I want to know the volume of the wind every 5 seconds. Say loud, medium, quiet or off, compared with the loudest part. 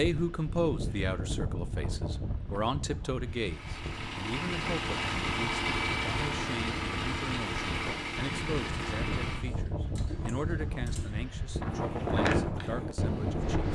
medium, medium, loud.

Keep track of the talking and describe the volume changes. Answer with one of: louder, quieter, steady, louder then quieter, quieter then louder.
quieter.